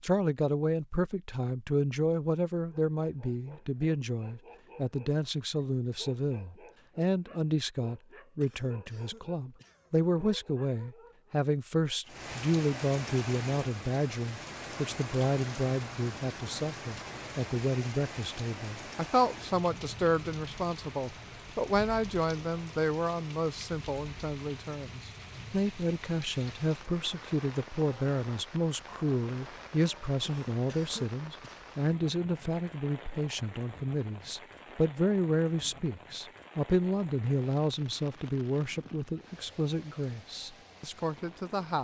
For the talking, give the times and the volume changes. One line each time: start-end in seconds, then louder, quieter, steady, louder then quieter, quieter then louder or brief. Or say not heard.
0.0-41.7 steady.